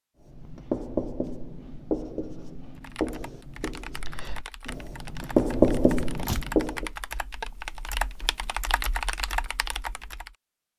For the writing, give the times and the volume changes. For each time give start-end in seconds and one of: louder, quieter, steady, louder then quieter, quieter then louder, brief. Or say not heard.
0.2-6.9 quieter then louder.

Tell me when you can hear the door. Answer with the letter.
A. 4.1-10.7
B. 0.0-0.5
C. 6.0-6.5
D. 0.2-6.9
C.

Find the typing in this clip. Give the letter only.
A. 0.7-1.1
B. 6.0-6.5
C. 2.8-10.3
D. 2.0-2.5
C.